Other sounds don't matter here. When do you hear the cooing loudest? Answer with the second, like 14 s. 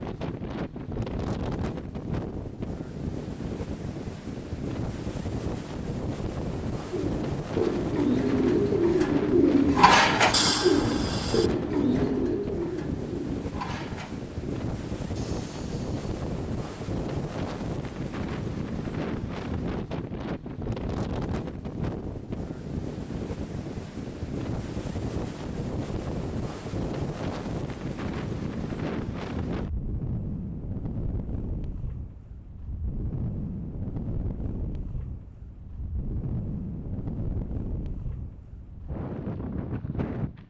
10 s.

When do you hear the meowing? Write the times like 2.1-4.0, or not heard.
10.3-11.5.